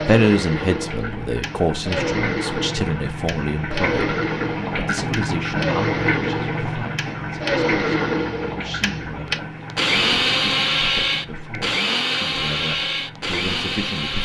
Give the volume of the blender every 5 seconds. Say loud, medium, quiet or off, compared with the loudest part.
medium, loud, loud.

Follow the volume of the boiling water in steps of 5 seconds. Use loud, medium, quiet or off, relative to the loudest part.
loud, loud, medium.